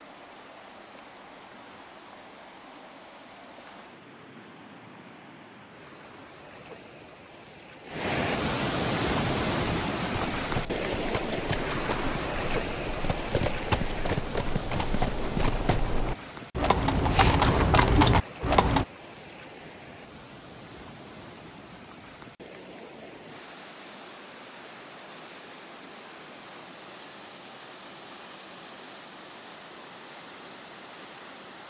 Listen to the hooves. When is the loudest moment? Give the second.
18 s.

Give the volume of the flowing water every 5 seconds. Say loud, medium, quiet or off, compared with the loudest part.
quiet, loud, loud, medium, quiet, quiet, quiet.